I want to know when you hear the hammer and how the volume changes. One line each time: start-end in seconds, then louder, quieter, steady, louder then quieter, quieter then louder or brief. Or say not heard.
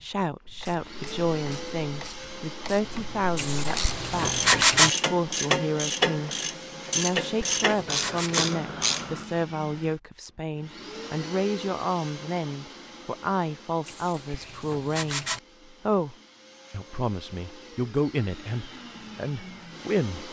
not heard.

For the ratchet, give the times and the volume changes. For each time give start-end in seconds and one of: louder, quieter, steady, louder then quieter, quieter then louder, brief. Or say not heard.
0.5-9.2 louder.